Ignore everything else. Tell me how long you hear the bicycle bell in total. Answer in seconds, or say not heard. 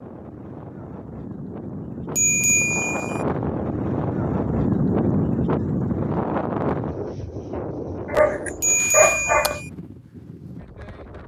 2 s.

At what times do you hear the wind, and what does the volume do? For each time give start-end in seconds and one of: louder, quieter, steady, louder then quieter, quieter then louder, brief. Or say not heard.
0.0-11.2 louder then quieter.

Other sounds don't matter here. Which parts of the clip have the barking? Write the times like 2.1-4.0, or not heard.
8.1-9.6.